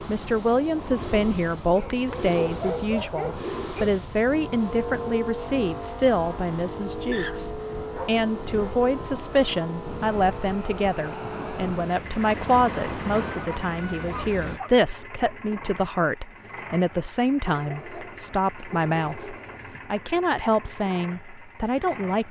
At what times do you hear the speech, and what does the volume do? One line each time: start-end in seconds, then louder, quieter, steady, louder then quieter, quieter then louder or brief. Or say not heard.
0.0-22.2 steady.